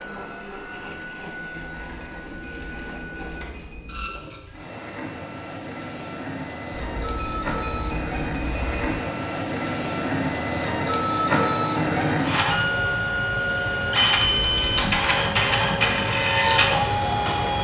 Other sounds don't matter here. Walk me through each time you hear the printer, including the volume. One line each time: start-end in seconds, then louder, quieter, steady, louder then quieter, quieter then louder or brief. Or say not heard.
0.0-17.5 louder.